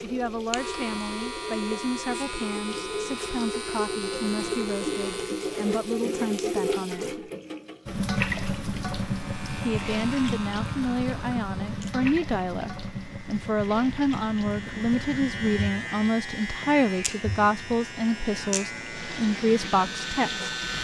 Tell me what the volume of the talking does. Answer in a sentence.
The loudness of the talking goes up.